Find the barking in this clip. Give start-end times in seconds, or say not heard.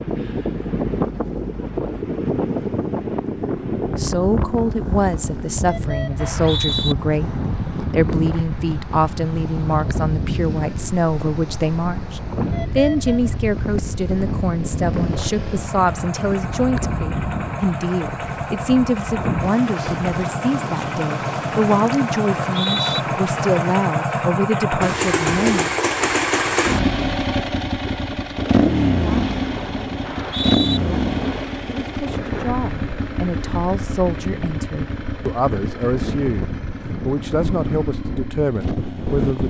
not heard.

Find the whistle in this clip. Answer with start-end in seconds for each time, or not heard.
6.2-7.0, 22.4-23.0, 30.1-30.8.